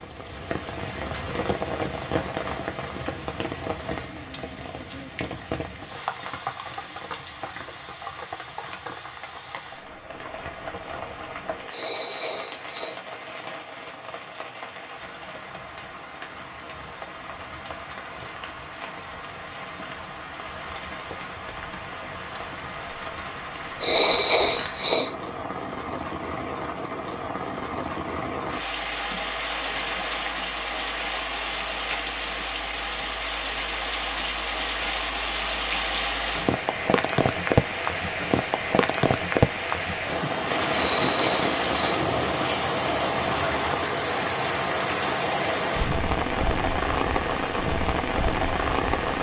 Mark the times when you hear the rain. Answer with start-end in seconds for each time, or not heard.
0.0-49.1.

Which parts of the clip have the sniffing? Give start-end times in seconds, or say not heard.
11.7-13.0, 23.8-25.1, 40.7-42.0.